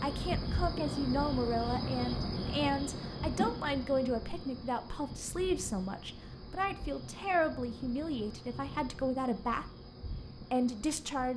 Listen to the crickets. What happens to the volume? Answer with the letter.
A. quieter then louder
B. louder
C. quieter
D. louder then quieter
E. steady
C.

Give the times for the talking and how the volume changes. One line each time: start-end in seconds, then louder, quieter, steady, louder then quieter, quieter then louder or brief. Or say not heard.
0.0-9.7 steady
10.3-11.3 brief.